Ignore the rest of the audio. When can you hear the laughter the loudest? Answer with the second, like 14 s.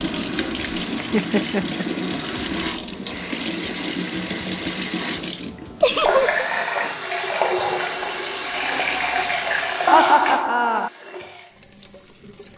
10 s.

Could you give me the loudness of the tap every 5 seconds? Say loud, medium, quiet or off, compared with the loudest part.
loud, loud, medium.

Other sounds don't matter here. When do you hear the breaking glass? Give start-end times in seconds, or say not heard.
not heard.